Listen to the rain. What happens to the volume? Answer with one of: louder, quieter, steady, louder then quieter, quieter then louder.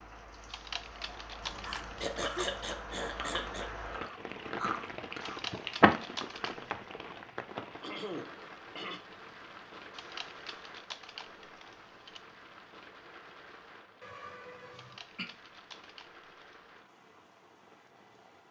quieter.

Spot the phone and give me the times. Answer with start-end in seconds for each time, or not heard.
not heard.